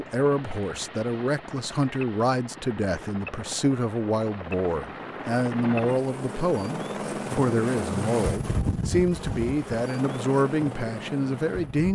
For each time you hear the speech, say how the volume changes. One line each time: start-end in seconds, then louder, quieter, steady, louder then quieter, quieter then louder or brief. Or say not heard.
0.0-11.9 steady.